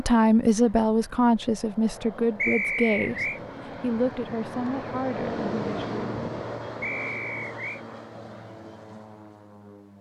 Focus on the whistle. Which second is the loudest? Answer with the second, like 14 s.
3 s.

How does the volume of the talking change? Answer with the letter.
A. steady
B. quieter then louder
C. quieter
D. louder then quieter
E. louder
C.